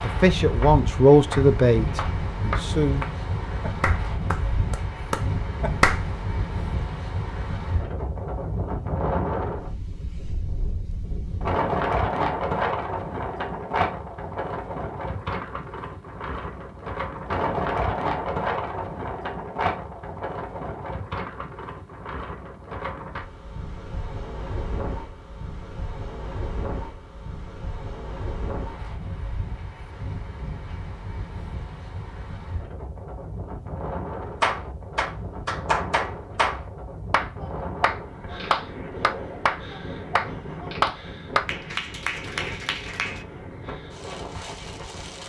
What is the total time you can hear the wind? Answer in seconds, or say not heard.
45 s.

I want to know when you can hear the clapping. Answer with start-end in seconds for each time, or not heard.
0.0-6.0, 34.4-43.2.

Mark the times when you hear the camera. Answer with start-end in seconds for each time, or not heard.
not heard.